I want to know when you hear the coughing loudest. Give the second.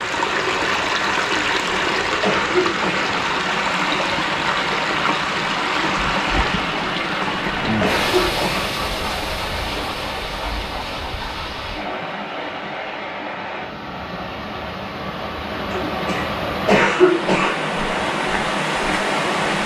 17 s.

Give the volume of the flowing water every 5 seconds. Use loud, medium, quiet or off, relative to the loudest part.
loud, loud, medium, loud.